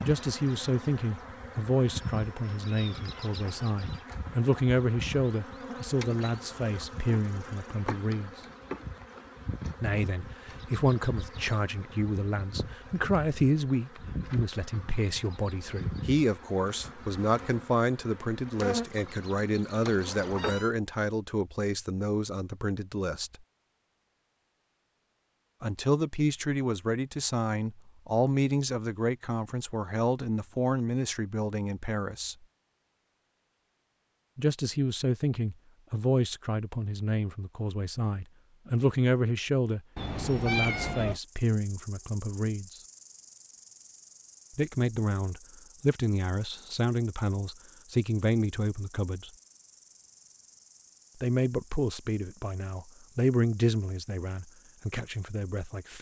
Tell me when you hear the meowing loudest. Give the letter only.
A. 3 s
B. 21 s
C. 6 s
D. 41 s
D.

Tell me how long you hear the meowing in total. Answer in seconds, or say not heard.
3 s.